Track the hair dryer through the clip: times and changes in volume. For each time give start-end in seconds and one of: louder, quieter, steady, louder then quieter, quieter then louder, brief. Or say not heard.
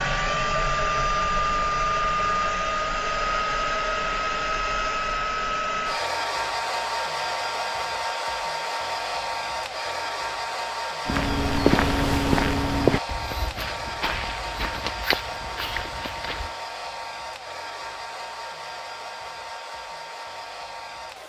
0.0-21.2 quieter.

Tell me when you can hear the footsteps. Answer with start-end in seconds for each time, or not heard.
11.1-16.6.